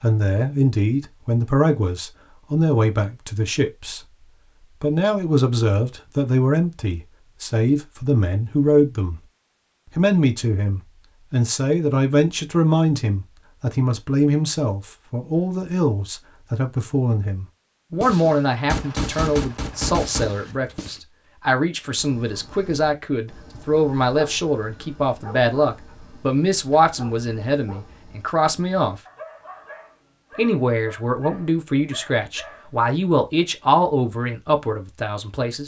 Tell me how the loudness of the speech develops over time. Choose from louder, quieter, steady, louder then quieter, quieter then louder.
steady.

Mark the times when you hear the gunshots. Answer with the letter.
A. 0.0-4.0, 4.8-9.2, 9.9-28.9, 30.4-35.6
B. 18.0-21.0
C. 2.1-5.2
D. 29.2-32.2
B.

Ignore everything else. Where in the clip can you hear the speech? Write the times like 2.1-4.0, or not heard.
0.0-4.0, 4.8-9.2, 9.9-28.9, 30.4-35.6.